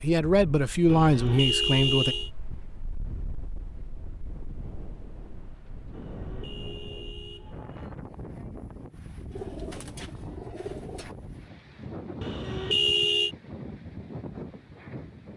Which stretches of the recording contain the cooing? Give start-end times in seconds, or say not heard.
9.3-11.2.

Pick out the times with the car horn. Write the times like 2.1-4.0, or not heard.
0.8-2.3, 5.9-8.0, 12.2-13.3.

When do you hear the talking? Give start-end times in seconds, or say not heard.
0.0-2.1.